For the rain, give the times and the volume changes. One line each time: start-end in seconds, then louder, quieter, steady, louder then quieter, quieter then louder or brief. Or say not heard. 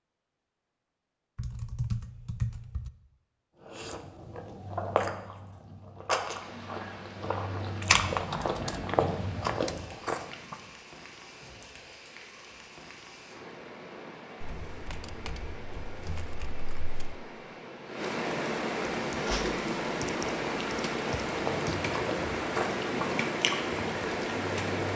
6.2-24.9 louder.